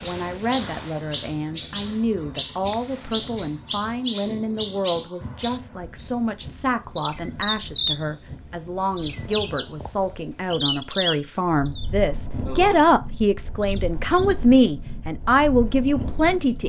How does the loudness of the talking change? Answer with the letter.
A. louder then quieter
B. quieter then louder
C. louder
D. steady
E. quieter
C.